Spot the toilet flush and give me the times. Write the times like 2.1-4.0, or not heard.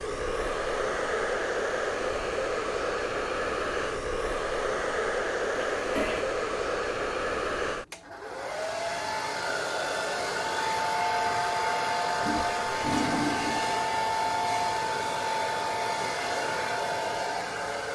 5.5-6.2, 12.2-13.8.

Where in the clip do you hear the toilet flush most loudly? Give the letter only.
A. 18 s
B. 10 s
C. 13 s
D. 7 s
C.